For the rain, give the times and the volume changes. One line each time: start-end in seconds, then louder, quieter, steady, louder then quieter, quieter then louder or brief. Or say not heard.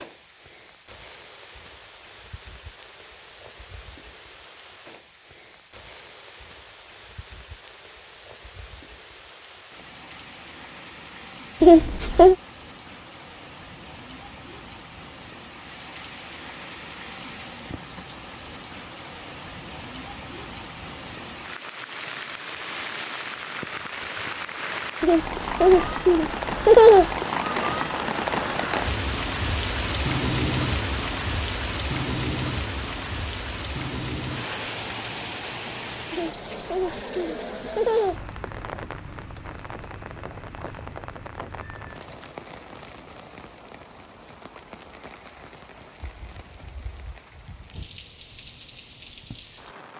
0.0-49.9 louder then quieter.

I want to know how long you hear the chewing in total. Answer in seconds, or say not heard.
not heard.